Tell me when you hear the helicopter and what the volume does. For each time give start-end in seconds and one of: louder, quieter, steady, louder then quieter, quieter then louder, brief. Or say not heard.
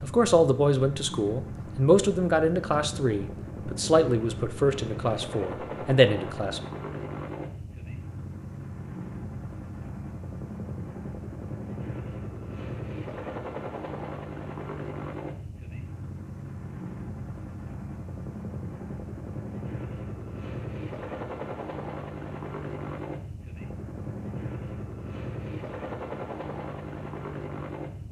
0.0-28.0 steady.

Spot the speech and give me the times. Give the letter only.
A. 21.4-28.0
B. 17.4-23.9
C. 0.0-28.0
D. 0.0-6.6
D.